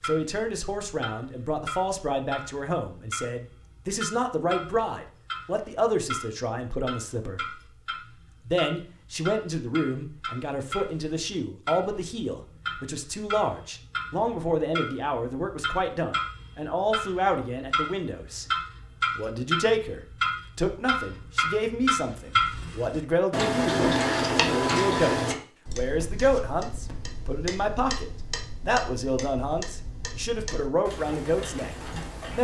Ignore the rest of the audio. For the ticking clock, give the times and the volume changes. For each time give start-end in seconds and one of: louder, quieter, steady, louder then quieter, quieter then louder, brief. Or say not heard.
0.0-32.3 louder then quieter.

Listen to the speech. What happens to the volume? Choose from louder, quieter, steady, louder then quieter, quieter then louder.
steady.